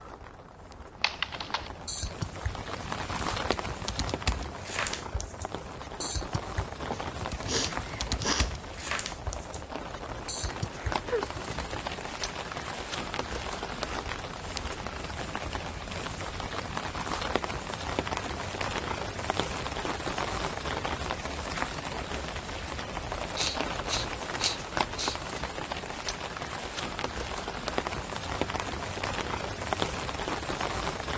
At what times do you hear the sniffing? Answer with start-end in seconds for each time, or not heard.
6.8-8.6, 10.6-11.3, 23.4-25.2.